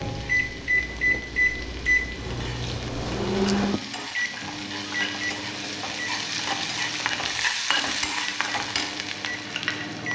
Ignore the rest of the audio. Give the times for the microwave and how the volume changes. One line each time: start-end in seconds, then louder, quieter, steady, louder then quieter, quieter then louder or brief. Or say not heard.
0.0-10.1 quieter.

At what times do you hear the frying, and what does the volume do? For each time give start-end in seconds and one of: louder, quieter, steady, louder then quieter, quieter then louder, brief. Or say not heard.
0.0-10.1 louder.